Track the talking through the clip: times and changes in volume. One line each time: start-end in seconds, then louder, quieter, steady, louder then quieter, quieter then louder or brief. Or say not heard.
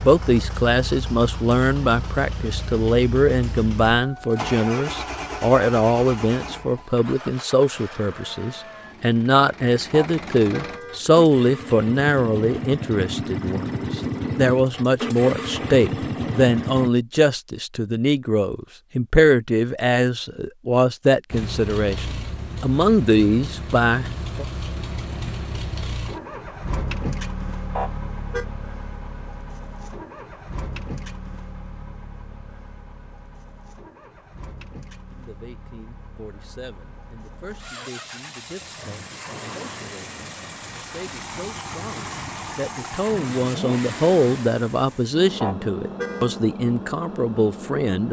0.0-24.4 steady
35.1-48.0 louder.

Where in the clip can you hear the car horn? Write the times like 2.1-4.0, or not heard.
9.9-11.0, 27.8-28.4, 45.4-46.4.